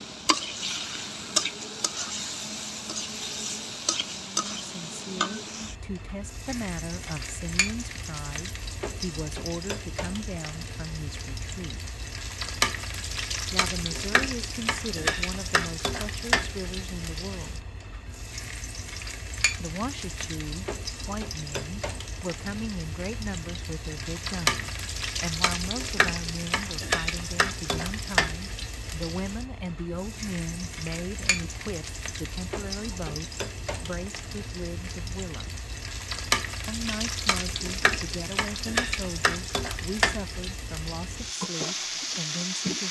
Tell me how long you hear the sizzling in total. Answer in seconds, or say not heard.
43 s.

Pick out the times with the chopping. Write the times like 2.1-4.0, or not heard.
not heard.